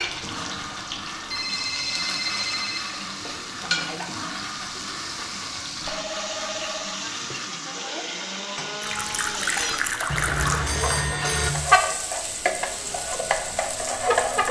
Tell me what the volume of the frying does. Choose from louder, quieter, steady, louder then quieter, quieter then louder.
louder.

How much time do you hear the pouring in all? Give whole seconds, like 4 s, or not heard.
2 s.